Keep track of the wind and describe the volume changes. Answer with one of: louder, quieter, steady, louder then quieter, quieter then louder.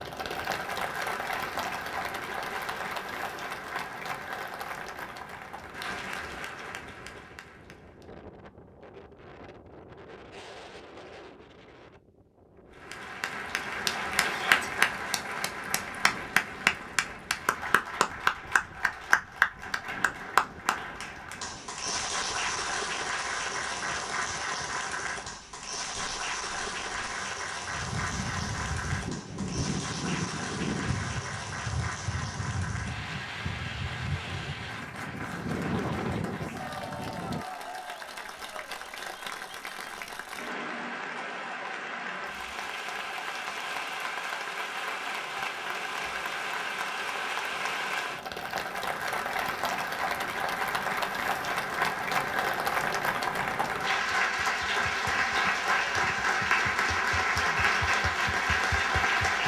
louder.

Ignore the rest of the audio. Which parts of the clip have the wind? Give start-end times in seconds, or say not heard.
0.0-37.5.